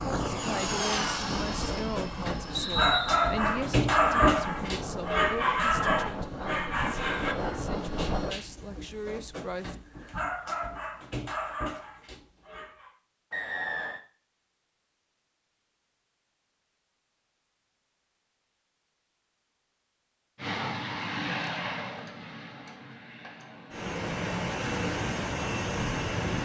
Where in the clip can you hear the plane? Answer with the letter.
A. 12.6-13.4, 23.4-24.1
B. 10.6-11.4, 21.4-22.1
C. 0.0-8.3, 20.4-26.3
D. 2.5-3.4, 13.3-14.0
C.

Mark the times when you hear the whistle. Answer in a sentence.
You can hear the whistle from 2.5 to 3.4 s and from 13.3 to 14.0 s.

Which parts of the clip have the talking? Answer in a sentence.
You can hear the talking from 0.2 to 9.8 s.